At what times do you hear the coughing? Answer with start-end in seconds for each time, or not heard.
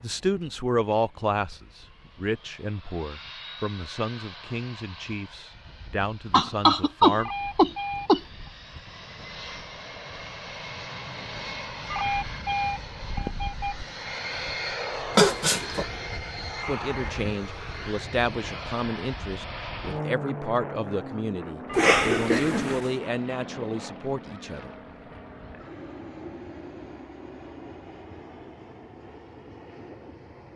6.3-8.2, 15.2-15.8, 21.8-22.9.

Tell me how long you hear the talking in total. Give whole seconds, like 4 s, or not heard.
16 s.